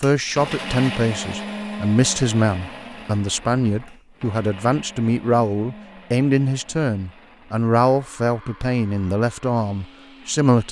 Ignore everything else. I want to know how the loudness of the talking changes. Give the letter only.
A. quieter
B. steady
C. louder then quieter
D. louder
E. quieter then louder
B.